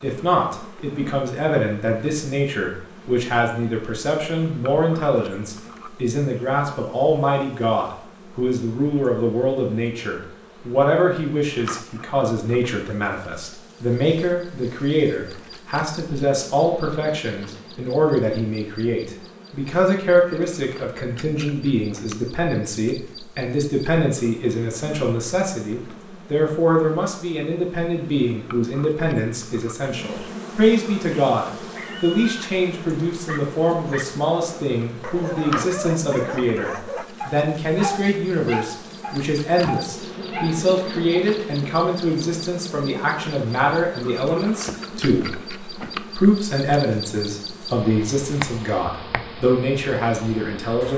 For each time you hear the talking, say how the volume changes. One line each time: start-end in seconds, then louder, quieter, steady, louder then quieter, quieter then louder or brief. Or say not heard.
0.0-50.9 steady.